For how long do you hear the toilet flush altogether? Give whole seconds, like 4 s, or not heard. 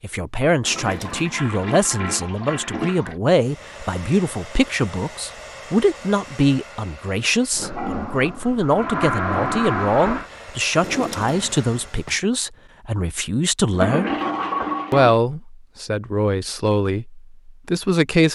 7 s.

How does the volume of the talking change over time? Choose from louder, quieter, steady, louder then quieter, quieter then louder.
steady.